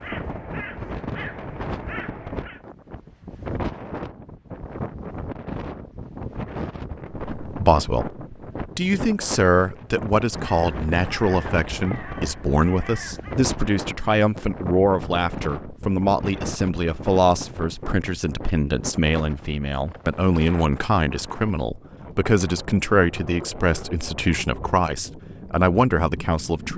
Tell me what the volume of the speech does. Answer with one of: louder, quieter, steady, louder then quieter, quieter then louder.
steady.